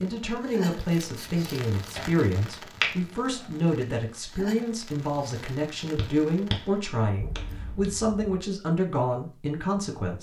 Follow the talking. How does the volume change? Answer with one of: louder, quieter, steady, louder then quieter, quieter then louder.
steady.